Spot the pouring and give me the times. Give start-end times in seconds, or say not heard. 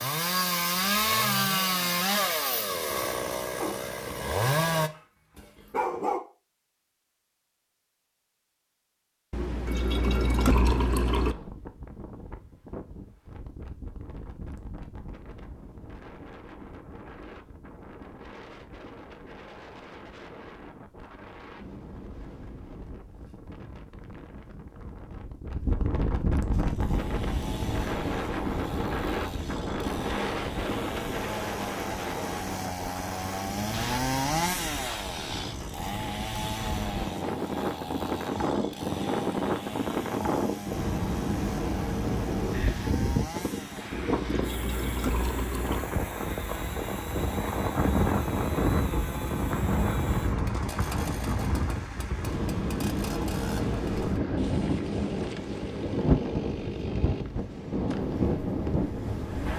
9.3-11.3, 44.1-45.9.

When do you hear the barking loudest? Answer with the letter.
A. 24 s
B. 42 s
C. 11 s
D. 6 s
D.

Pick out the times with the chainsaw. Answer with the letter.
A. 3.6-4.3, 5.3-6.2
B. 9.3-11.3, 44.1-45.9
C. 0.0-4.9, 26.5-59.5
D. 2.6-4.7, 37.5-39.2
C.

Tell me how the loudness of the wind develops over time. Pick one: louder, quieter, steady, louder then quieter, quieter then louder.
louder.